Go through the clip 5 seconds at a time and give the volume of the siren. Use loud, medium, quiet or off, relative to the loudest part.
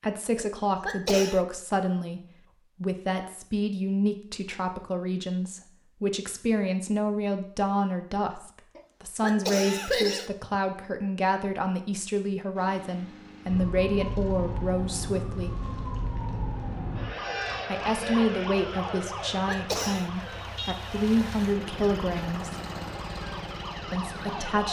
off, off, loud, loud, medium.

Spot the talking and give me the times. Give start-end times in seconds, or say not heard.
0.0-2.2, 2.8-15.6, 17.6-22.6, 23.9-24.6.